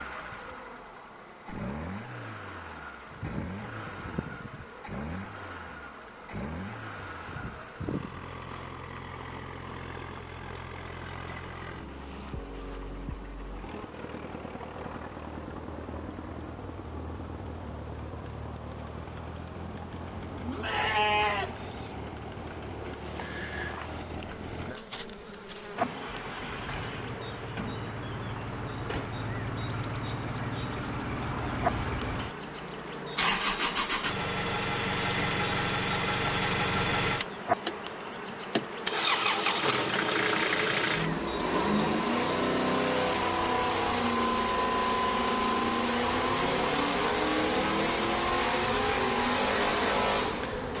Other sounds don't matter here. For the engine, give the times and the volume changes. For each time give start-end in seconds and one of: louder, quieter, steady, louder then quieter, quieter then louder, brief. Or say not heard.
0.0-50.7 louder.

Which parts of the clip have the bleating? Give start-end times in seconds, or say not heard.
20.4-21.9.